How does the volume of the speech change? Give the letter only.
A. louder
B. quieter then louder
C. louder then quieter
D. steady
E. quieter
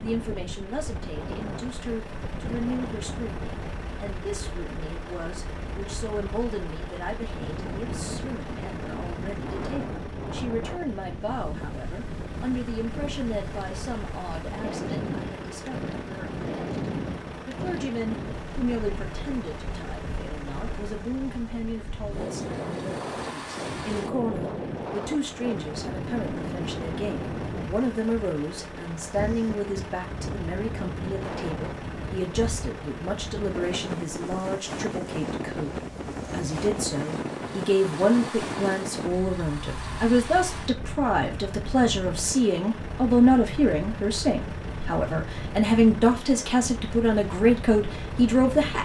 A.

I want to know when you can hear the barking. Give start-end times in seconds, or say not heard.
not heard.